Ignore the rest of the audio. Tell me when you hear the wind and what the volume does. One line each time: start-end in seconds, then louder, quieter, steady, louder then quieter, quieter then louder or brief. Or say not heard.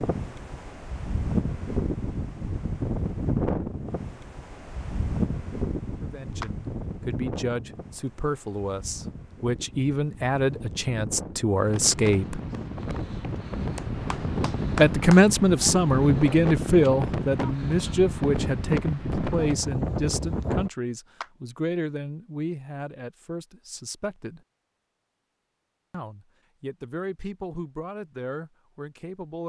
0.0-20.7 quieter then louder.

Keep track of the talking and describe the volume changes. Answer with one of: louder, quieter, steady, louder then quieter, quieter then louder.
louder then quieter.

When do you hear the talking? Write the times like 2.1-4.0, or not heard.
6.0-12.4, 14.8-24.4, 25.9-29.4.